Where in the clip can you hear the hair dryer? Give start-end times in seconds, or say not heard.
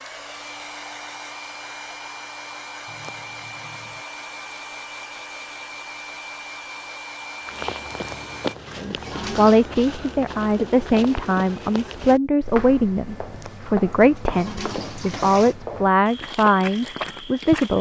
0.0-8.6.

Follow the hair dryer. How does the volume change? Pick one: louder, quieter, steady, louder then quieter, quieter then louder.
steady.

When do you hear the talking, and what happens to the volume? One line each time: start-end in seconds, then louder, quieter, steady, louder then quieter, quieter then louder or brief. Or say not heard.
8.8-17.7 steady.